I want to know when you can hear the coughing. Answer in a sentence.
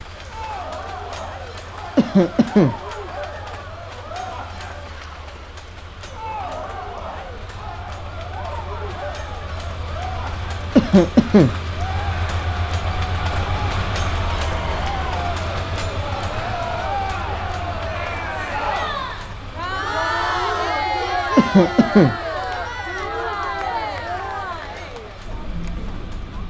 The coughing can be heard from 1.9 to 2.8 s, from 10.8 to 11.6 s and from 21.4 to 22.1 s.